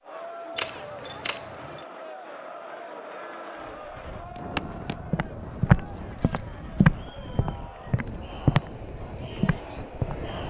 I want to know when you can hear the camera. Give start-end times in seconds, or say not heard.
0.6-1.9, 5.8-6.8.